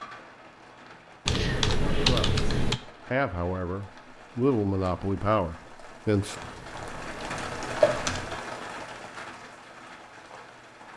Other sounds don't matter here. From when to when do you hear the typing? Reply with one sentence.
You can hear the typing from 1.2 to 2.8 s and from 6.4 to 8.4 s.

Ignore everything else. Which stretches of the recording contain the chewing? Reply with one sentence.
You can't hear the chewing here.